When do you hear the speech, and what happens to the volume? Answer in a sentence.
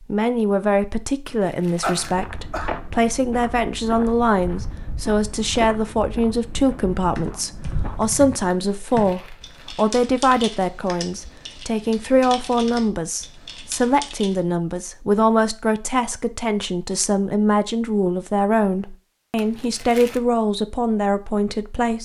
The speech can be heard from 0.0 to 22.0 s, at a steady volume.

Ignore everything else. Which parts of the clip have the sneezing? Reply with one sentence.
You can hear the sneezing from 1.8 to 2.7 s.